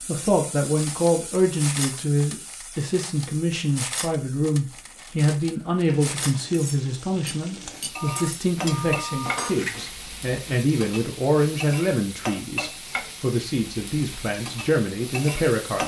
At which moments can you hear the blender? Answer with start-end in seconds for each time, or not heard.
not heard.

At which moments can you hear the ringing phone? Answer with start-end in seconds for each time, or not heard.
8.0-9.5.